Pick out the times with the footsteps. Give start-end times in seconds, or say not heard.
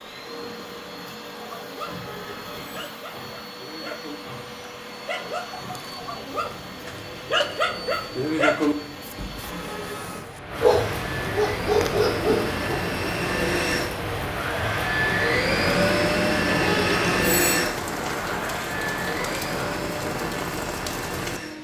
not heard.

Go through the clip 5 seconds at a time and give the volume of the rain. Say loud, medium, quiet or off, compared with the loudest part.
quiet, quiet, loud, loud, loud.